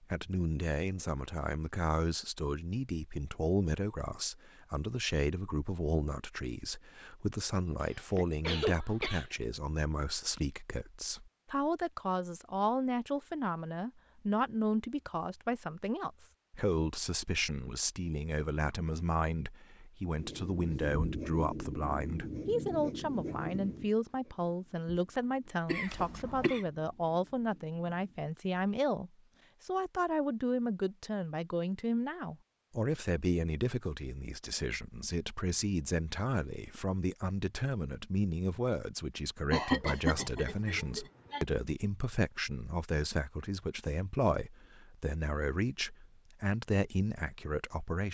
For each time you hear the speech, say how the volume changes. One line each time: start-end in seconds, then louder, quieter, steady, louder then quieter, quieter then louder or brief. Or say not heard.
0.0-48.1 steady.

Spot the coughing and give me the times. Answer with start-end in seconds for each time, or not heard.
7.8-9.3, 25.6-26.6, 39.5-41.5.